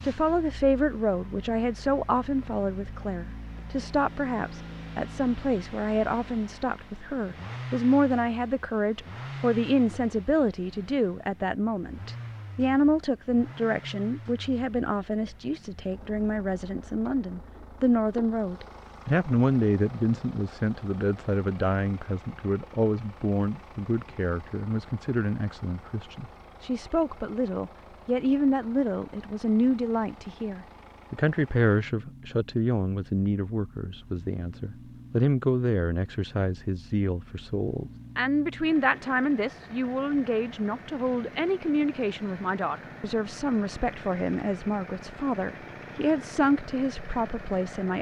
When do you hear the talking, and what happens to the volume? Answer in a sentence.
You can hear the talking from 0.0 to 47.9 s, at a steady volume.